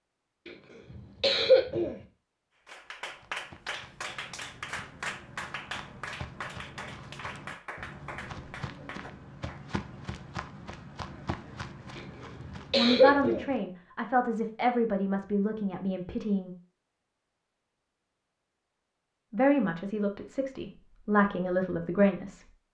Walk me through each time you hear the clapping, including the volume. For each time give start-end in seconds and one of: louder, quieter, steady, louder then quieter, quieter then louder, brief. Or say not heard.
2.6-9.7 quieter.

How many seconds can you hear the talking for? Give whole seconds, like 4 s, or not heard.
7 s.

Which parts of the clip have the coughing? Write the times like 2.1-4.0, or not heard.
0.5-1.9, 11.9-13.4.